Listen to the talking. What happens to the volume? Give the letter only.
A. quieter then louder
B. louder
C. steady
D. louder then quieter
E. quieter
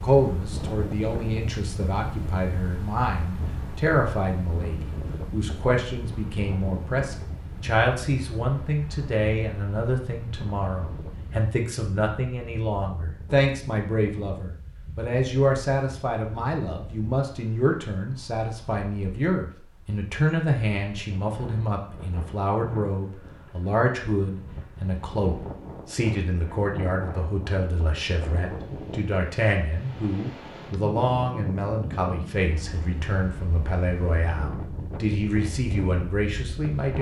C.